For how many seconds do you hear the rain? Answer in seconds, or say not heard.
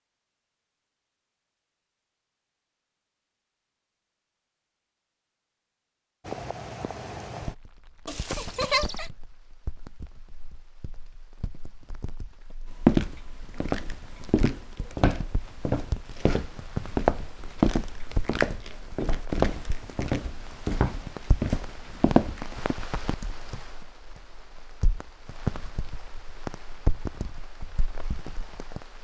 23 s.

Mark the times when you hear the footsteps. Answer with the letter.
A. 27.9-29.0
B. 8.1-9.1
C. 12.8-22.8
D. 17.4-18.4
C.